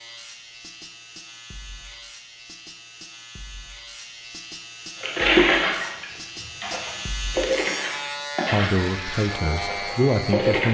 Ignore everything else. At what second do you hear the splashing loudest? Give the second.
5 s.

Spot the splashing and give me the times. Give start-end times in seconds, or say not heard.
5.0-10.6.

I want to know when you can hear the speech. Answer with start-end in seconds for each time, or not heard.
8.5-10.6.